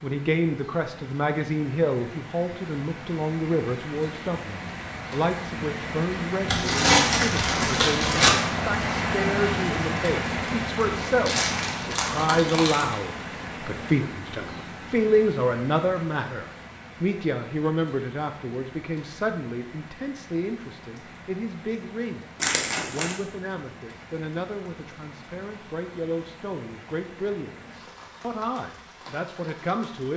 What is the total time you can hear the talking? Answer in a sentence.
You can hear the talking for 30 seconds altogether.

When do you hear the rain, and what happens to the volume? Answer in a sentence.
The rain can be heard from 0.0 to 30.1 s, getting louder then quieter.